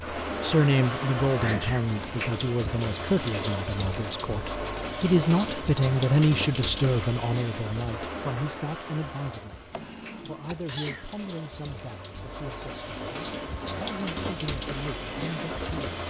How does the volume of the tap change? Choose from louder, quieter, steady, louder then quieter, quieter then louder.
quieter then louder.